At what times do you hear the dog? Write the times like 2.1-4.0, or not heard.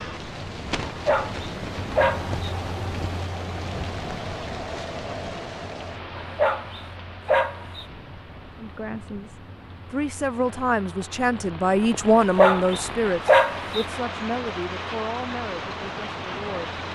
0.8-2.4, 6.2-7.8, 12.2-13.8.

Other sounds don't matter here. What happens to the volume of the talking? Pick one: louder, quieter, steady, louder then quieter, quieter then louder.
louder then quieter.